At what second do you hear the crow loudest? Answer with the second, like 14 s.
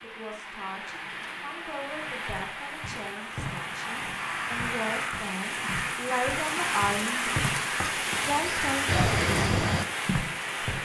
9 s.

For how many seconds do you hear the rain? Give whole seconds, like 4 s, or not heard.
11 s.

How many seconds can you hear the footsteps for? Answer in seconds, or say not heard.
8 s.